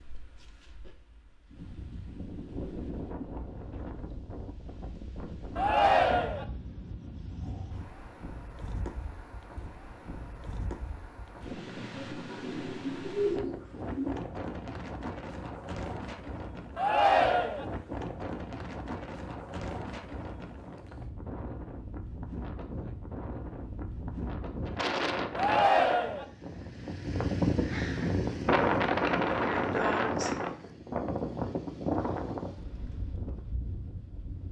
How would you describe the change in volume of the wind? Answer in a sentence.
The loudness of the wind goes up.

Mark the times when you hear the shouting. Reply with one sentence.
You can hear the shouting from 5.5 to 6.5 s, from 16.8 to 17.6 s and from 25.4 to 26.2 s.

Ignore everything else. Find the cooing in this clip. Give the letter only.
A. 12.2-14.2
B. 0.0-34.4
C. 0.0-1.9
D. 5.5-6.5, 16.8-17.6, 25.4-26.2
A.